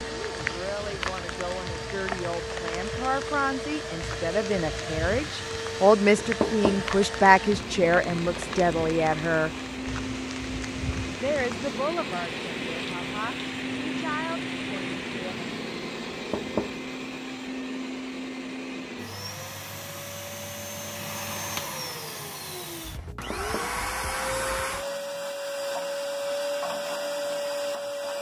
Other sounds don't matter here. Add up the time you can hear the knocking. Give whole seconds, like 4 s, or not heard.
2 s.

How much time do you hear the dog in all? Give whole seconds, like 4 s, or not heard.
not heard.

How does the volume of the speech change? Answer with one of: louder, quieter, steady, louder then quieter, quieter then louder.
louder then quieter.